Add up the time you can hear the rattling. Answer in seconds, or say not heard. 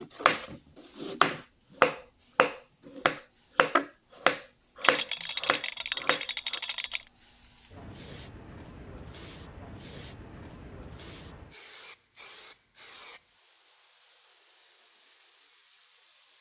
2 s.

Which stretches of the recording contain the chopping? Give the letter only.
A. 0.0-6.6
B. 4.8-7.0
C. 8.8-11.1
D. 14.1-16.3
A.